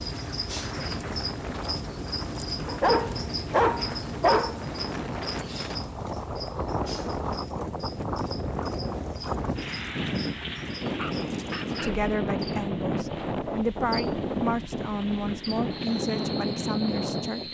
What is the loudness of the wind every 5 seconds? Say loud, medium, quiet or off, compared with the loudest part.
medium, loud, loud, loud.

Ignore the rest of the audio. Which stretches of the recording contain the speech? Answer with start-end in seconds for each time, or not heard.
11.6-17.5.